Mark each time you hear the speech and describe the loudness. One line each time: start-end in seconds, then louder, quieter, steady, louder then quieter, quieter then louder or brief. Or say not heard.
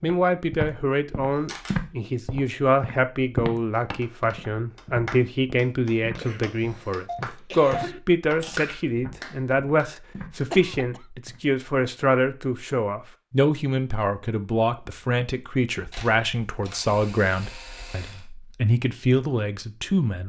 0.0-20.2 steady.